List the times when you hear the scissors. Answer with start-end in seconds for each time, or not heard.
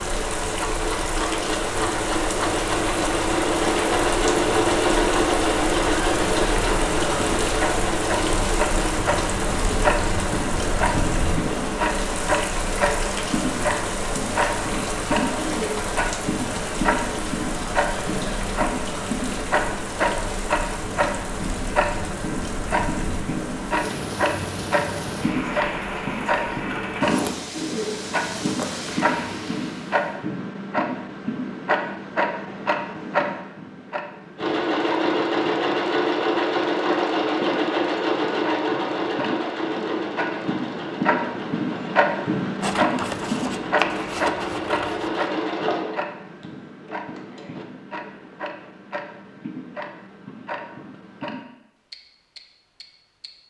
42.6-45.2.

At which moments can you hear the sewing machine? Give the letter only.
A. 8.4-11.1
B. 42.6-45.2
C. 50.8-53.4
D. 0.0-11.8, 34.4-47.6
D.